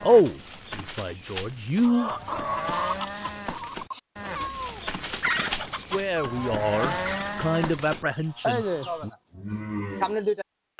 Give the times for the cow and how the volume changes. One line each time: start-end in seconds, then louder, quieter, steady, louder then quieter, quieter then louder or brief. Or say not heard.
0.0-10.7 louder.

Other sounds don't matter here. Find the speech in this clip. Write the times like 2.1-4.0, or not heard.
0.0-2.1, 5.7-9.1.